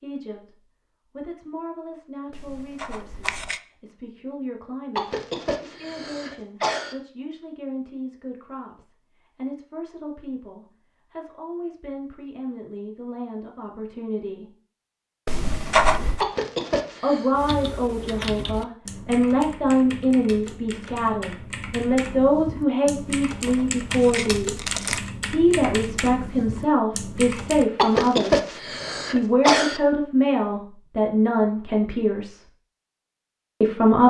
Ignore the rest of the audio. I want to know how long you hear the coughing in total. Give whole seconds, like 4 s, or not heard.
5 s.